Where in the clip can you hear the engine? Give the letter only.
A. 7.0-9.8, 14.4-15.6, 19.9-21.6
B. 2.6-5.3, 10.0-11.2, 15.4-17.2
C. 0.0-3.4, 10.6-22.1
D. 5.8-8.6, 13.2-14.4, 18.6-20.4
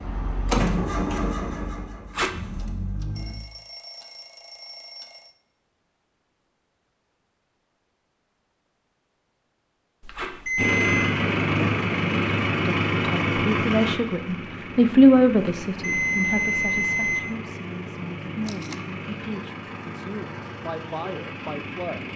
C.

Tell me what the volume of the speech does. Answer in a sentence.
The loudness of the speech goes down.